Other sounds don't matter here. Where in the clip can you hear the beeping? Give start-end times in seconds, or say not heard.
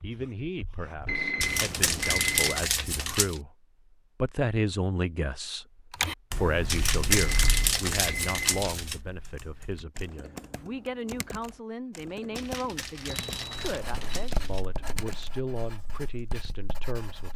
1.1-2.6, 7.2-8.7, 13.1-14.3.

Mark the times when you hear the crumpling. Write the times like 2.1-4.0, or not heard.
1.4-3.4, 6.7-9.0, 12.3-14.7.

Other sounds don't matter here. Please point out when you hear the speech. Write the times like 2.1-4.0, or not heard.
0.0-3.5, 4.2-5.7, 6.3-17.3.